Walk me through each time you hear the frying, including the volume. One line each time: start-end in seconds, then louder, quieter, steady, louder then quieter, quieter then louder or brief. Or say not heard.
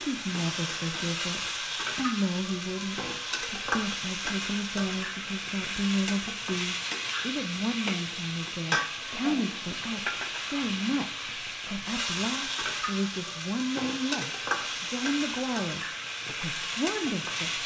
0.0-17.6 steady.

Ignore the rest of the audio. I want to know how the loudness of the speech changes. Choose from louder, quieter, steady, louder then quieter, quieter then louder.
steady.